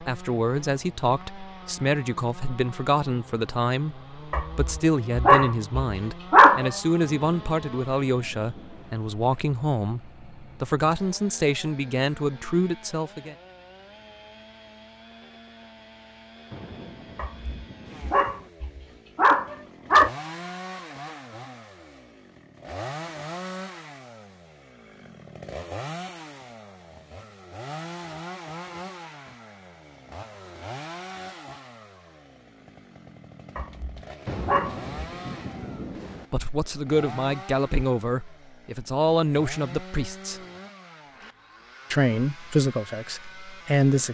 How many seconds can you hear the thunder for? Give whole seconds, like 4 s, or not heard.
6 s.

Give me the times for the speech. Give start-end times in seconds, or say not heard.
0.0-13.3, 36.3-40.4, 41.9-44.0.